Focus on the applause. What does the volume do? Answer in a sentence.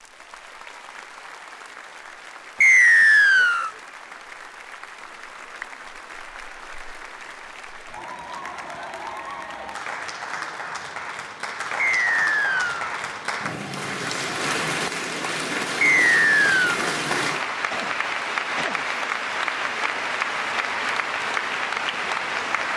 The volume of the applause goes up.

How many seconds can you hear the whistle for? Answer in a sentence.
The whistle can be heard for 3 seconds in total.